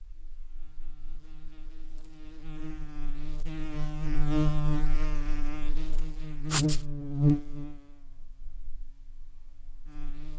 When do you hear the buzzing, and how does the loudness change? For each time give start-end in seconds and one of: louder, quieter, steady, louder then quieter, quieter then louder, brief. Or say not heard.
0.0-10.3 louder then quieter.